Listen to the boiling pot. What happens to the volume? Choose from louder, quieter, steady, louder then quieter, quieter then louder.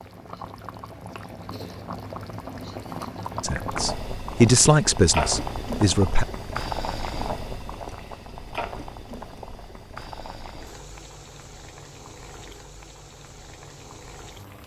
louder then quieter.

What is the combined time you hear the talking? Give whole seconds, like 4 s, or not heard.
3 s.